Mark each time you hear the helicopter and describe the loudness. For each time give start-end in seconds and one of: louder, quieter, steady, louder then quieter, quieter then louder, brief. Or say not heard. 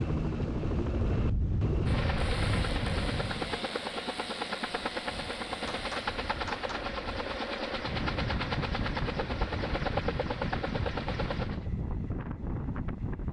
0.0-11.7 steady.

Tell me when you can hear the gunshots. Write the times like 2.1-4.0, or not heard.
5.7-7.0.